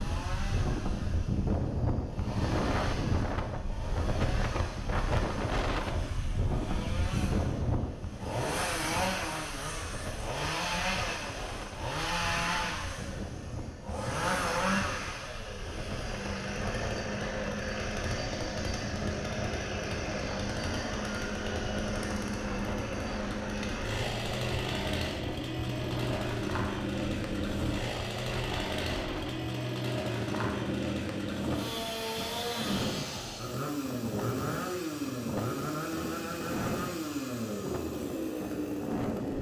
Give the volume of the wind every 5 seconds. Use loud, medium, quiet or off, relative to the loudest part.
loud, loud, medium, medium, medium, medium, medium, medium.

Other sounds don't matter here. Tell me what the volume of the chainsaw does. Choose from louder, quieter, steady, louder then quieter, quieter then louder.
louder.